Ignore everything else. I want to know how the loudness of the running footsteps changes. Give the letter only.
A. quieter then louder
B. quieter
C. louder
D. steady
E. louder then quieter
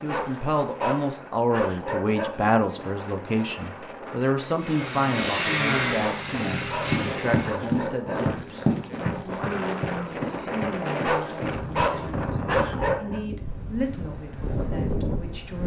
B.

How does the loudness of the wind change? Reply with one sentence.
The loudness of the wind goes up.